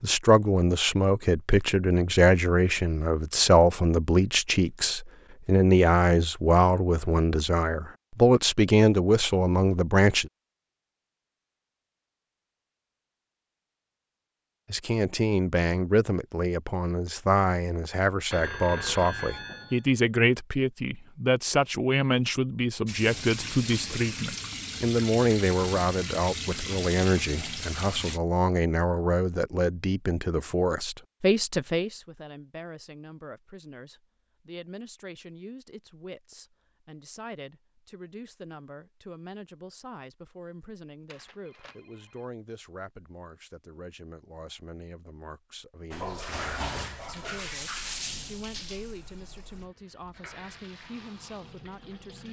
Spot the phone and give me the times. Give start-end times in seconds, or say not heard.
18.3-19.9, 41.0-42.2.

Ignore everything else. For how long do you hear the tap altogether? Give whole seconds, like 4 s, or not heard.
12 s.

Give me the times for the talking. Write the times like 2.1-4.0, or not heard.
0.0-10.3, 14.7-52.2.